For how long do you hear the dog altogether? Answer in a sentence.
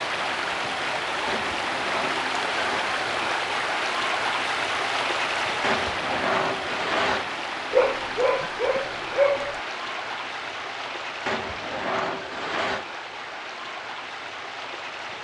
The dog can be heard for 2 seconds in total.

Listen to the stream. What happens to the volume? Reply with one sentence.
The volume of the stream goes down.